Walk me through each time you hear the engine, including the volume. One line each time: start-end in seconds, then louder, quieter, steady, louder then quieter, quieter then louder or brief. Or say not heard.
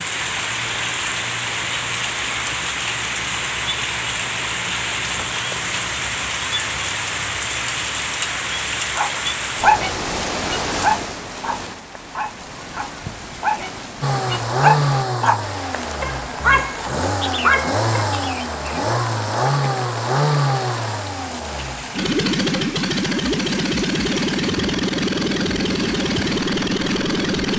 14.0-27.5 steady.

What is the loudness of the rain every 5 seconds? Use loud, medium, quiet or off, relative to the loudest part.
loud, loud, medium, medium, medium, medium.